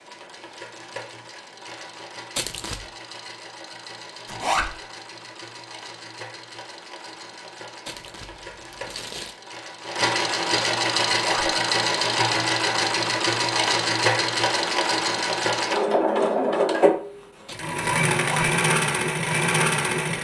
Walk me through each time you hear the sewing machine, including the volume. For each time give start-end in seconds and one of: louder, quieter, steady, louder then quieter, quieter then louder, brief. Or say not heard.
0.0-20.1 louder.